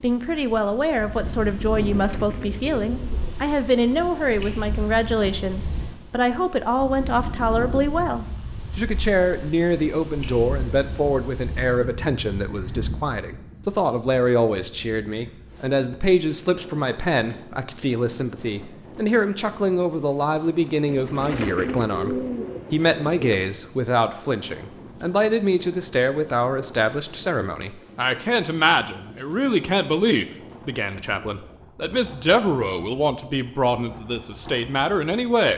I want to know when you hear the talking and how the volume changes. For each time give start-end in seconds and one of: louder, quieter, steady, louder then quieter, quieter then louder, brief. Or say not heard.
0.0-35.5 steady.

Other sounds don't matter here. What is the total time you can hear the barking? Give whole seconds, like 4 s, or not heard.
not heard.